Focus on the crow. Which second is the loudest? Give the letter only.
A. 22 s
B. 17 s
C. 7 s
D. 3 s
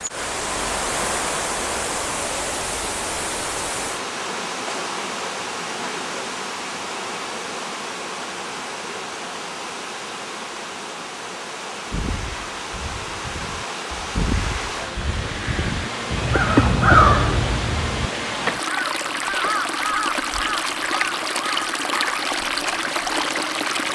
B.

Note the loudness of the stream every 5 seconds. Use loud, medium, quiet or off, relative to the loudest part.
loud, medium, medium, loud, loud.